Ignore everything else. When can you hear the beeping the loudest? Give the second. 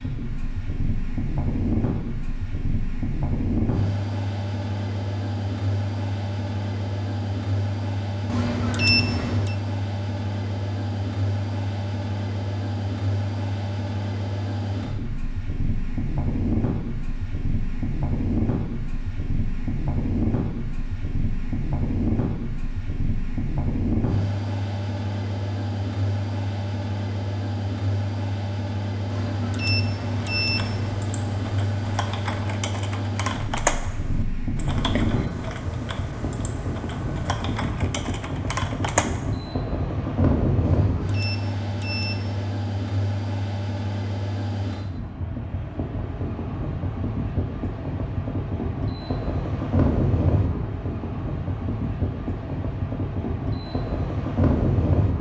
9 s.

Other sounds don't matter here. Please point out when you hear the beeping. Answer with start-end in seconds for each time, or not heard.
8.2-9.6, 29.1-30.9, 40.6-42.4.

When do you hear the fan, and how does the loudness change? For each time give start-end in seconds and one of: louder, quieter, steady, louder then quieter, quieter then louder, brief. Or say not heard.
0.0-55.1 steady.